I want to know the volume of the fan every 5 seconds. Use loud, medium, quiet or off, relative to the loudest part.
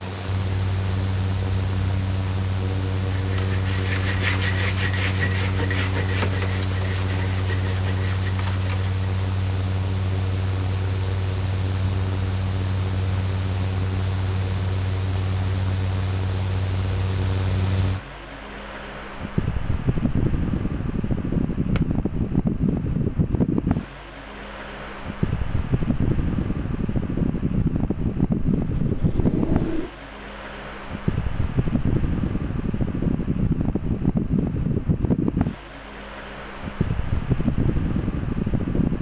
medium, medium, medium, medium, loud, loud, loud, loud.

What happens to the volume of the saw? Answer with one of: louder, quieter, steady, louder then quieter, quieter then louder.
quieter.